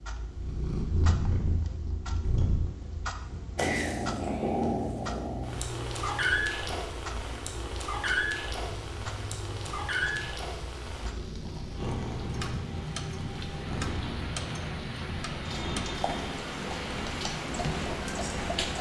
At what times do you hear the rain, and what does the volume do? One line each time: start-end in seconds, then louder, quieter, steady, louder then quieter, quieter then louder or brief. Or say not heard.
8.6-18.7 louder.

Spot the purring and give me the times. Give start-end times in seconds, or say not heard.
0.1-18.7.